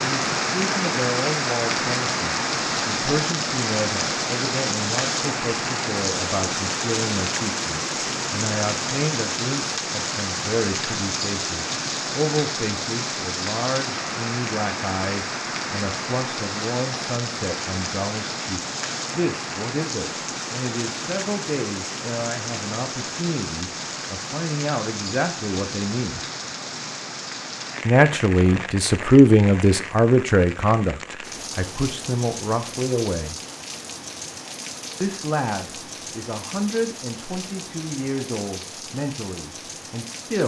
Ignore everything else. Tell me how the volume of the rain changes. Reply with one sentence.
The loudness of the rain goes down.